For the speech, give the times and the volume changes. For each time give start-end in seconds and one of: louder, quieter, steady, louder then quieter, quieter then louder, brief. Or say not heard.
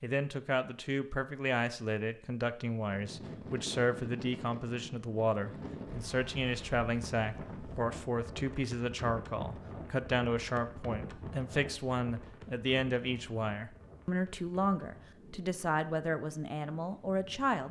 0.0-17.6 steady.